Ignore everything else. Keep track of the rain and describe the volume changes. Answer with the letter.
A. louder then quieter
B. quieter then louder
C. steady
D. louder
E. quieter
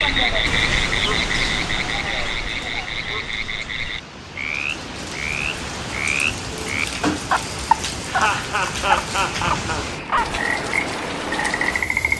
B.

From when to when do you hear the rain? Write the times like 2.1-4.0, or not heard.
0.0-12.1.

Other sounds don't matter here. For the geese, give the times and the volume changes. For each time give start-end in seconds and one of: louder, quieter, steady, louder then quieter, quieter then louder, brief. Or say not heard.
not heard.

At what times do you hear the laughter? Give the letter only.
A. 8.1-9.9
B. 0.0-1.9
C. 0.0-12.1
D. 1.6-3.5
A.